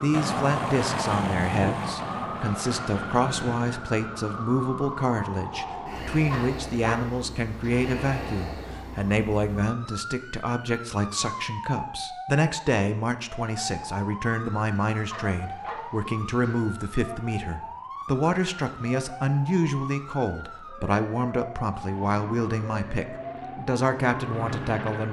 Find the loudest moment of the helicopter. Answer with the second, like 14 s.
1 s.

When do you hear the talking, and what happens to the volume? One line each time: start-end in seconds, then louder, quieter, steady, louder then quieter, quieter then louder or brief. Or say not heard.
0.0-25.0 steady.